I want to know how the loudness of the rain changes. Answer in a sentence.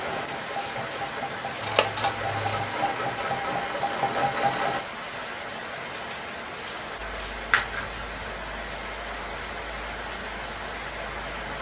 The loudness of the rain stays about the same.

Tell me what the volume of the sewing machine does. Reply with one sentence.
The loudness of the sewing machine goes up.